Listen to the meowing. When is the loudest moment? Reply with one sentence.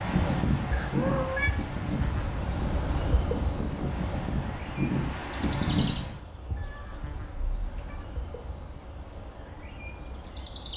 The volume of the meowing peaks at 1 second.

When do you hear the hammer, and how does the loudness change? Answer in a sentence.
You can't hear the hammer here.